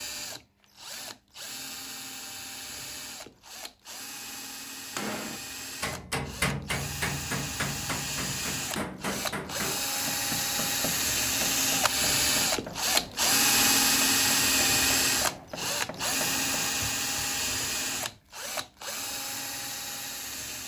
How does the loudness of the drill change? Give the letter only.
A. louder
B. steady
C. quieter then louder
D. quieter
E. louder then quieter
E.